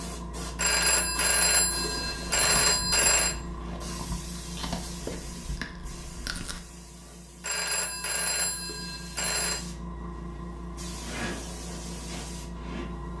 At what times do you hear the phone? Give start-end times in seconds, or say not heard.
0.6-3.4, 7.4-9.7.